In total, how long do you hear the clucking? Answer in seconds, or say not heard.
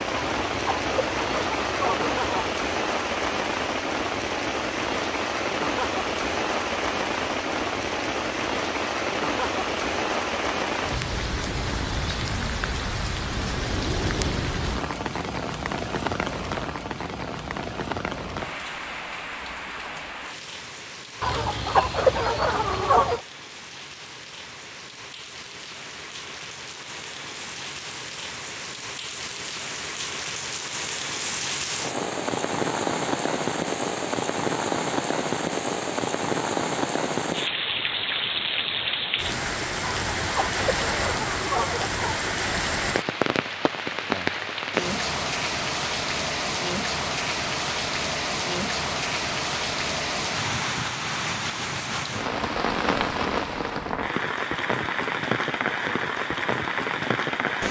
7 s.